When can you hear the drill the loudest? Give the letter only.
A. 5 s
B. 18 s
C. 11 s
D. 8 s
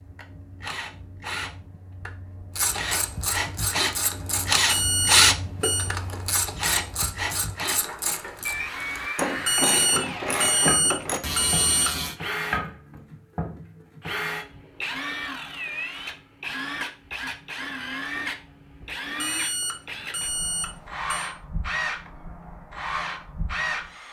A.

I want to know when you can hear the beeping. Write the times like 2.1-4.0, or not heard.
4.7-5.9, 9.4-11.9, 19.1-21.3.